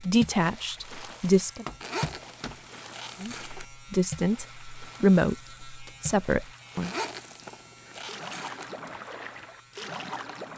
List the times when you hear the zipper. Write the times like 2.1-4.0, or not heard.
1.8-3.6, 6.8-8.7.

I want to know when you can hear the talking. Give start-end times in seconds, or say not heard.
0.0-1.6, 3.2-6.9.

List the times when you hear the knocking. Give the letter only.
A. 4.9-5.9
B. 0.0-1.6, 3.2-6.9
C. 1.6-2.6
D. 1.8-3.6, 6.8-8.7
C.